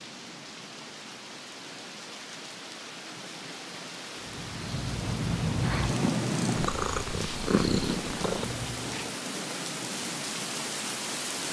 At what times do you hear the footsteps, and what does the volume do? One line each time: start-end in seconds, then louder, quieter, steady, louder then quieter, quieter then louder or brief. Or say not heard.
not heard.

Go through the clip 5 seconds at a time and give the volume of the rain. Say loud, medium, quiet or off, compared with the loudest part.
medium, loud, loud.